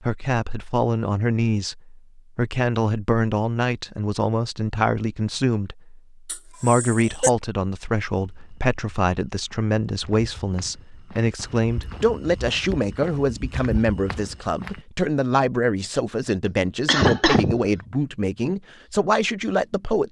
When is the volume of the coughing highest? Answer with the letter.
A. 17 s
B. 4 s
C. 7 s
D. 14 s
A.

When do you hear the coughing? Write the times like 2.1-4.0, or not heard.
6.2-7.3, 16.4-17.6.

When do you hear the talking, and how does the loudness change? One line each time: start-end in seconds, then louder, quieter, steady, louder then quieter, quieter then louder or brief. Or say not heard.
0.0-20.0 steady.